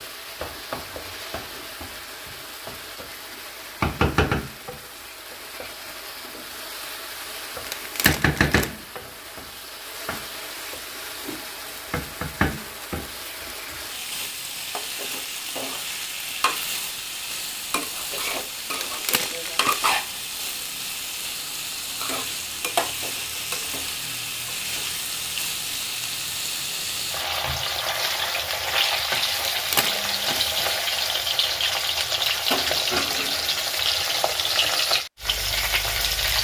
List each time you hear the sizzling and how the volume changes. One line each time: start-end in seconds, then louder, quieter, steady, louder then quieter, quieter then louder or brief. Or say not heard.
0.0-36.3 louder.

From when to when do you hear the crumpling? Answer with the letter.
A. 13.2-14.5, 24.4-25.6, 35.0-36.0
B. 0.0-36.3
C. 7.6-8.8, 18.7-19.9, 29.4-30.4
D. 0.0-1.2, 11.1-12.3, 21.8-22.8
C.